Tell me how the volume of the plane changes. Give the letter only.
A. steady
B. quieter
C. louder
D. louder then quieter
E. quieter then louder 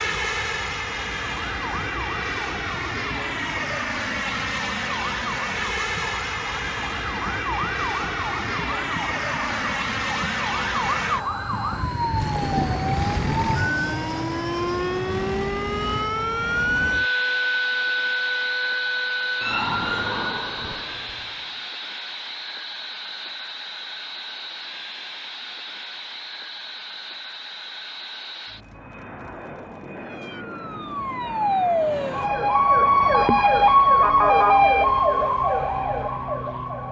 B.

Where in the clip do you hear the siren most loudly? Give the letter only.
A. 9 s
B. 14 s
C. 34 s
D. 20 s
C.